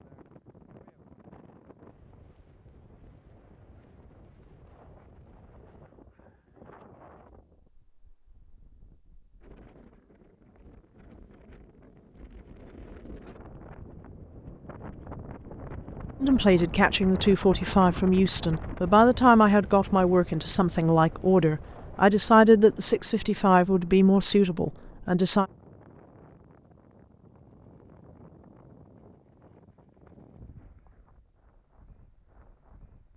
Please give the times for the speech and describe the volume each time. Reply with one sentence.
You can hear the speech from 16.2 to 25.4 s, at a steady volume.